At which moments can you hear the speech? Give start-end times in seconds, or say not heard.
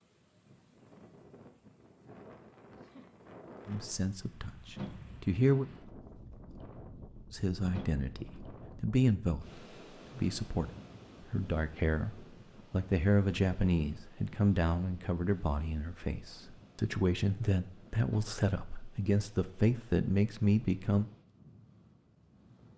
3.6-5.7, 7.3-10.7, 11.3-21.1.